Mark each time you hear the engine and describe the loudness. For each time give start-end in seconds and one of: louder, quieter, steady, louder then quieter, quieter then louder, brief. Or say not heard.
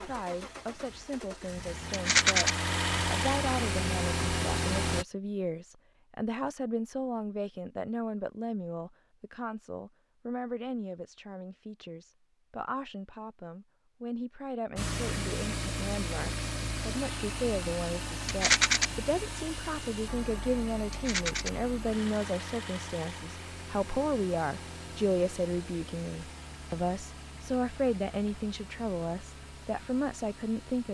0.0-5.0 louder
14.8-30.8 quieter.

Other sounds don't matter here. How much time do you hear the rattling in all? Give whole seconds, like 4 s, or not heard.
2 s.